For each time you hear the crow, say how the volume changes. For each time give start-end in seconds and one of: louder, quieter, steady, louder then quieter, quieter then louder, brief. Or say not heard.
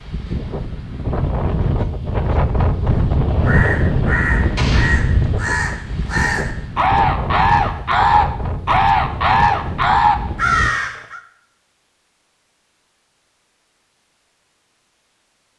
2.9-11.2 louder.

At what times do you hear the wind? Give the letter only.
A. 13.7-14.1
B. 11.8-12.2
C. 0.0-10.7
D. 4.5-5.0
C.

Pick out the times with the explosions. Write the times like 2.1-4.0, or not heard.
4.5-5.0.